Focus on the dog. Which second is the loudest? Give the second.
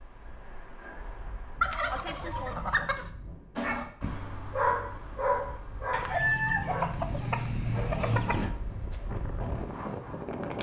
5 s.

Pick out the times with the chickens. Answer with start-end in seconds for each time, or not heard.
1.6-3.1, 5.9-8.6.